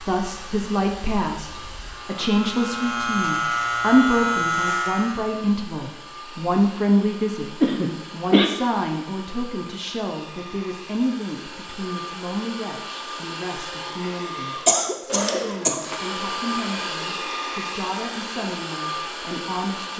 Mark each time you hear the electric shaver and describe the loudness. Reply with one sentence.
The electric shaver can be heard from 0.0 to 5.2 s, getting louder.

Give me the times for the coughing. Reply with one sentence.
You can hear the coughing from 7.6 to 8.5 s and from 14.7 to 15.8 s.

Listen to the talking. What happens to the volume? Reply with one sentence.
The volume of the talking goes down.